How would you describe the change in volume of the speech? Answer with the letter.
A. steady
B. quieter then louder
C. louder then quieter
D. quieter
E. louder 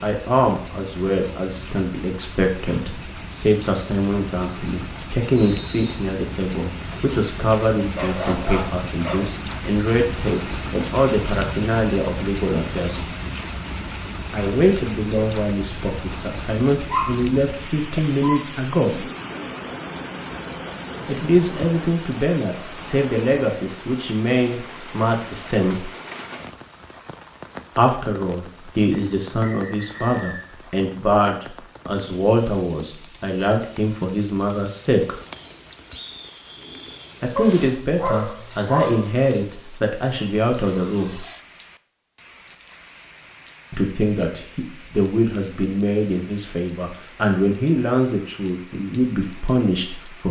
A.